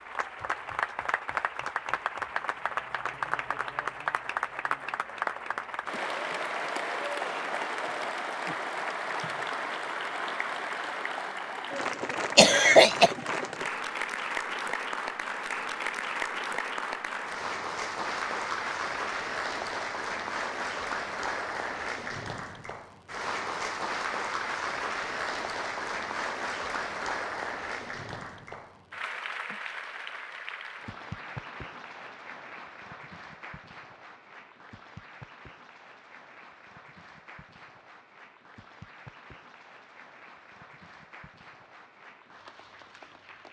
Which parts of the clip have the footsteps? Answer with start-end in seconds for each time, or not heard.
not heard.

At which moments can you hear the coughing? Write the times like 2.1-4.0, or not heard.
12.3-13.1.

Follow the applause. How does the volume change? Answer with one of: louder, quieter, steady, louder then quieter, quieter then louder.
quieter.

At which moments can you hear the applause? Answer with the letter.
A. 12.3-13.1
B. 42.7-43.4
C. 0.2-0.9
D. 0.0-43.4
D.